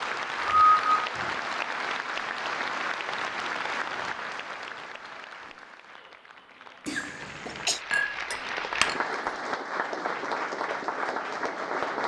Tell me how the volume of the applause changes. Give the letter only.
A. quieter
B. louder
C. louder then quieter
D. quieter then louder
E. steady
D.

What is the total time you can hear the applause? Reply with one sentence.
You can hear the applause for 12 seconds altogether.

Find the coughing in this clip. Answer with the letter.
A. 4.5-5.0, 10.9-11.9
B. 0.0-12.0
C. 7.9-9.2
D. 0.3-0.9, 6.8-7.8
D.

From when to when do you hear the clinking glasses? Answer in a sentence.
The clinking glasses can be heard from 7.9 to 9.2 s.